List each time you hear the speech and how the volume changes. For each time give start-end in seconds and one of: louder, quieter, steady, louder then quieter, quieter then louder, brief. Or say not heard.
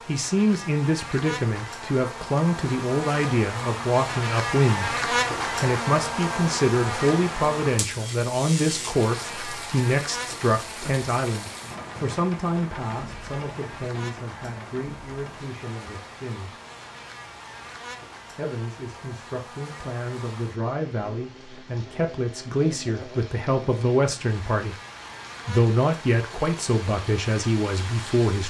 0.1-16.6 quieter
18.3-24.8 louder
25.4-28.4 brief.